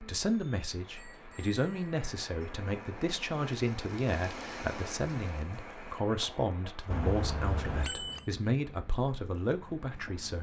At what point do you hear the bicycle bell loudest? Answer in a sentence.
The volume of the bicycle bell peaks at 8 seconds.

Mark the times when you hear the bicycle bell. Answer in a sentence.
You can hear the bicycle bell from 0.2 to 1.9 s and from 6.9 to 8.2 s.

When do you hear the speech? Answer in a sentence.
The speech can be heard from 0.0 to 10.3 s.